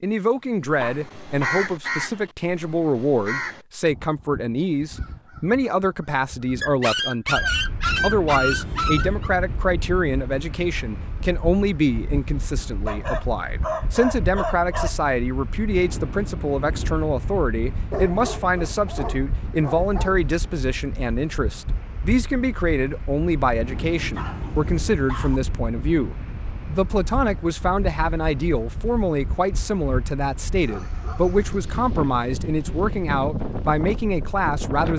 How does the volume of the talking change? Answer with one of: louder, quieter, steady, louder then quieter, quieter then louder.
steady.